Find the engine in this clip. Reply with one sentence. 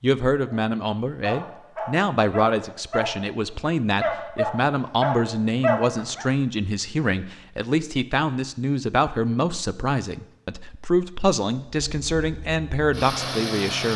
You can hear the engine from 11.7 to 13.9 s.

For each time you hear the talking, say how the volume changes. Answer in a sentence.
The talking can be heard from 0.0 to 13.9 s, at a steady volume.